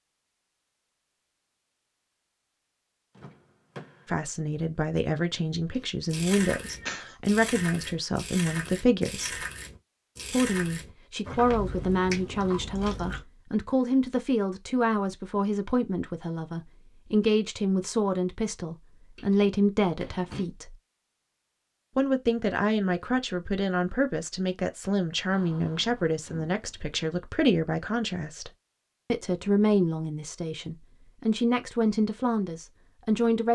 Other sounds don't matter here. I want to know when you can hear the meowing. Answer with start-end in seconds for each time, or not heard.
6.6-7.2.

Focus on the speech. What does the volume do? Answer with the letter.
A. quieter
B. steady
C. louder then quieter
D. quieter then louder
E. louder
B.